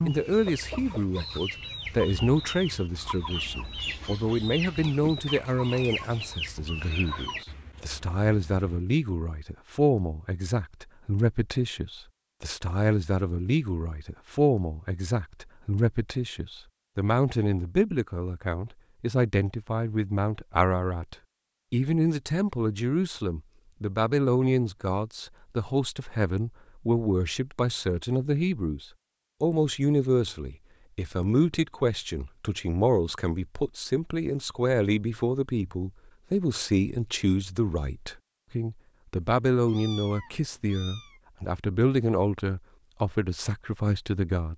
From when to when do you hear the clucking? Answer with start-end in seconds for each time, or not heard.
0.0-7.5.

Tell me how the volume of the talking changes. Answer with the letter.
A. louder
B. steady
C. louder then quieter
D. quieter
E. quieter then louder
B.